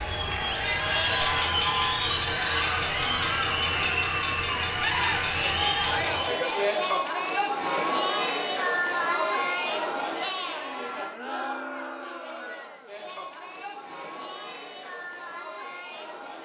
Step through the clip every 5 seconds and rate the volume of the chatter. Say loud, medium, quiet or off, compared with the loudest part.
loud, loud, medium, quiet.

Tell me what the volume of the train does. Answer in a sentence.
The volume of the train stays about the same.